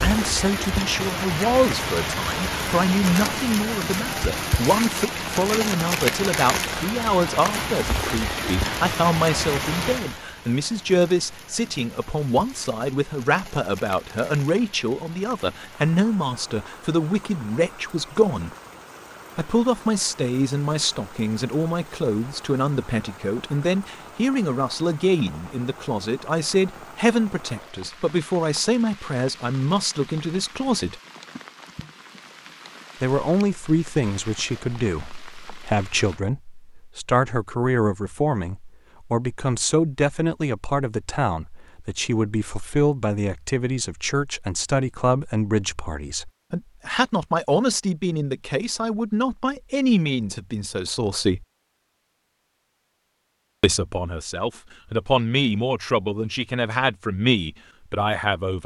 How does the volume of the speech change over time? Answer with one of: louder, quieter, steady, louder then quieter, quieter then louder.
steady.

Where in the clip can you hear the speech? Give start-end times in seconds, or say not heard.
0.0-18.5, 19.4-31.0, 33.0-51.5, 53.6-58.6.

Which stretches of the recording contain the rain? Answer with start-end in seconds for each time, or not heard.
0.0-36.2.